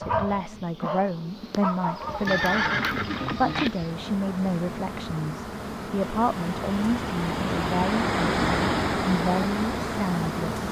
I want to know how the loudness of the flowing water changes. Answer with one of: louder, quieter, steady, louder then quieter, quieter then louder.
louder.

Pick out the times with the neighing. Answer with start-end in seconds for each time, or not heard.
2.2-3.7.